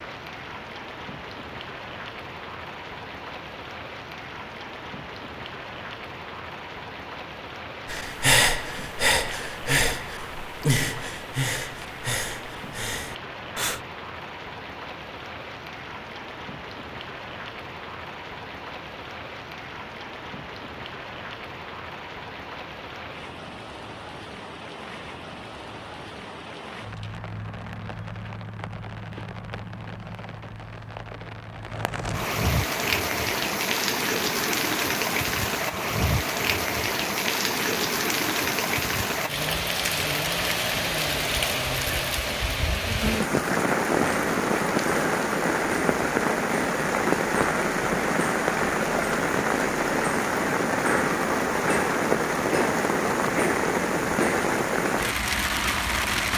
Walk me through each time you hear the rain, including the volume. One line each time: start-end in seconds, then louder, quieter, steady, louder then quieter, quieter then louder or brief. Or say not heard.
0.0-56.3 louder.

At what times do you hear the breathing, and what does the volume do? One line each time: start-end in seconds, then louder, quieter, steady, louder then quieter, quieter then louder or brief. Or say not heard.
7.8-13.8 quieter.